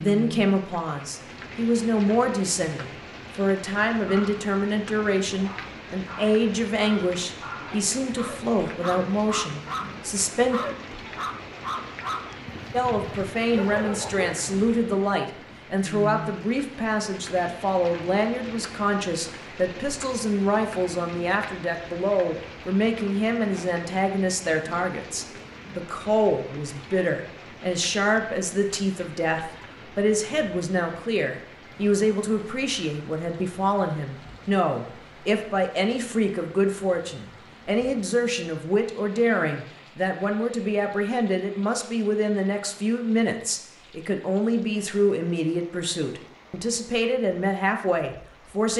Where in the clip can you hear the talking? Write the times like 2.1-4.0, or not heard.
0.0-10.6, 12.7-48.7.